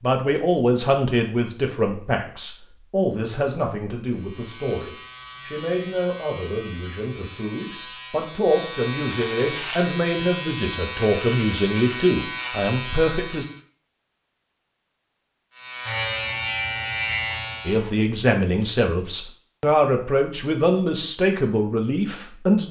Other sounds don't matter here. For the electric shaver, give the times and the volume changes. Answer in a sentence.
You can hear the electric shaver from 4.1 to 13.6 s, getting louder; and briefly from 15.6 to 17.9 s.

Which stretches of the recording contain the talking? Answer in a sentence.
You can hear the talking from 0.0 to 13.4 s and from 17.6 to 22.6 s.